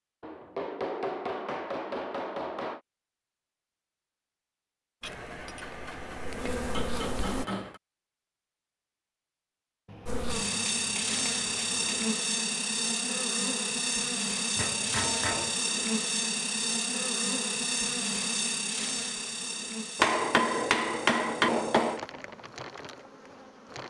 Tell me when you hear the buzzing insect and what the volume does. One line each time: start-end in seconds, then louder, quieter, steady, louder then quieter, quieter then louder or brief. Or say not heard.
5.0-7.5 brief
10.1-23.8 quieter.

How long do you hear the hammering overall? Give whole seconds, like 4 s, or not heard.
11 s.